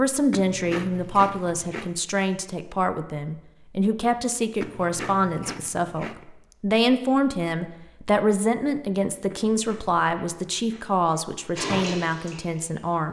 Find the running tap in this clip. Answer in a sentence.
You can hear the running tap from 11.6 to 13.0 s.